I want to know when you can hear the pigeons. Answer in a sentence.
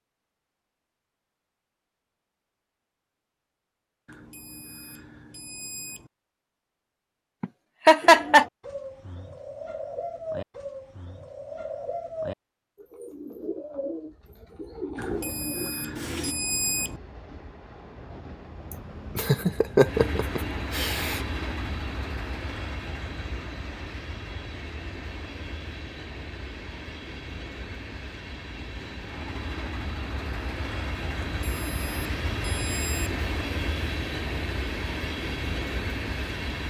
You can hear the pigeons from 8.0 to 16.4 s.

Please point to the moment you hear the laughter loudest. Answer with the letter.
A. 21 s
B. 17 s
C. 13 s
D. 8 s
D.